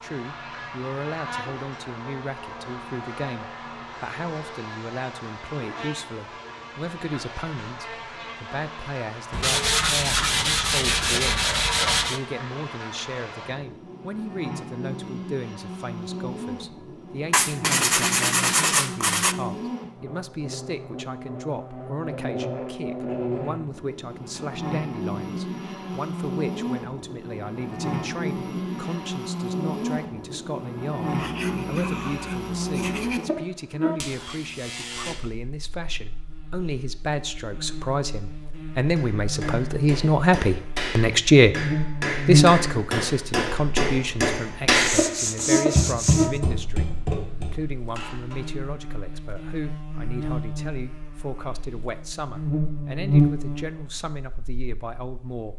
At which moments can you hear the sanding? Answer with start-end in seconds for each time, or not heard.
9.3-12.2, 17.3-19.4, 31.1-33.2, 44.7-46.4.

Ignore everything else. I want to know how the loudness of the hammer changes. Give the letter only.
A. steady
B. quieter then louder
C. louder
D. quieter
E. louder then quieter
E.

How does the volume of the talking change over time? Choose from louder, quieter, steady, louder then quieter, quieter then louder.
louder then quieter.